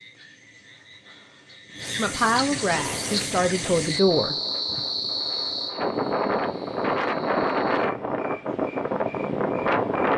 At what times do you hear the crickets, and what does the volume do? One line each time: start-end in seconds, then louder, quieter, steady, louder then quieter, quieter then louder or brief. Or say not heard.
0.0-10.1 louder then quieter.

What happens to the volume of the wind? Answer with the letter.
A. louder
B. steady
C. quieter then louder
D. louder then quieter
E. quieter
A.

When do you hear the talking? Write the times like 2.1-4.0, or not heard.
1.9-4.3.